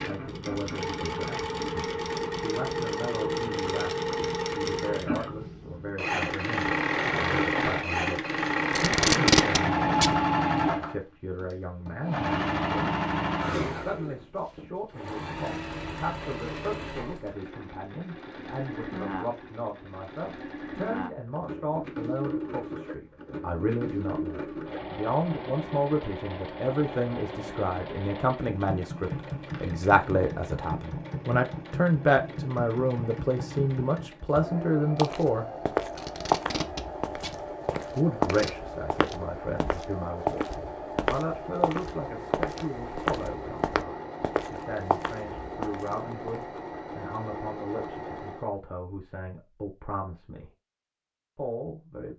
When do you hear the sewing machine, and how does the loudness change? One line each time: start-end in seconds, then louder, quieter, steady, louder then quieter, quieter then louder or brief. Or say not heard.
0.0-48.5 quieter.